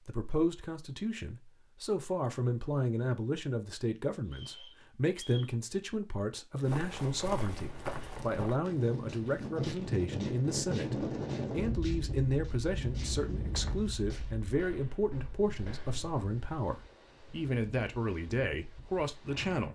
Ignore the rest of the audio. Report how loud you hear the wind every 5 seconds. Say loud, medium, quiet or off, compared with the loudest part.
off, loud, loud, quiet.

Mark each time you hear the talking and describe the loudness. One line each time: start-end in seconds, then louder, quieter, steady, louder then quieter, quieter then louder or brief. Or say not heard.
0.1-19.7 steady.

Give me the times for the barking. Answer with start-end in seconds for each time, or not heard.
not heard.